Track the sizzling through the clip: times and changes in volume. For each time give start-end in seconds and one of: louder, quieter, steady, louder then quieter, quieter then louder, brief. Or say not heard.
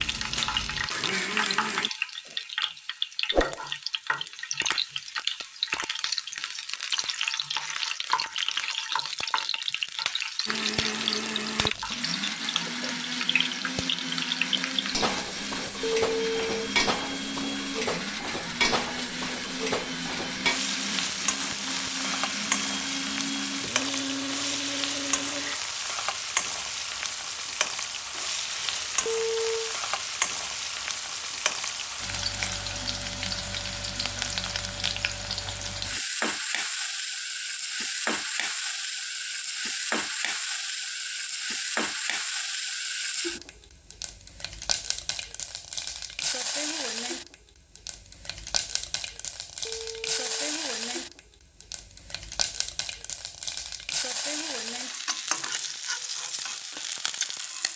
0.0-57.7 steady.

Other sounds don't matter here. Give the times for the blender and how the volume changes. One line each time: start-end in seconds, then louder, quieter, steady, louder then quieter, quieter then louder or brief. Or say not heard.
0.0-1.9 brief
10.4-25.6 steady.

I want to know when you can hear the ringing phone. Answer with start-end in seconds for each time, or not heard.
15.8-16.7, 29.1-29.8, 49.6-50.3.